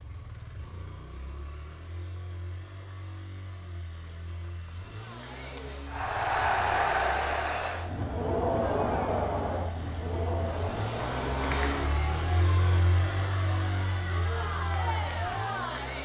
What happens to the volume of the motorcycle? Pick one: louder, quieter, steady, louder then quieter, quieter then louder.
louder.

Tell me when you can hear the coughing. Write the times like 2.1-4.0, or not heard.
not heard.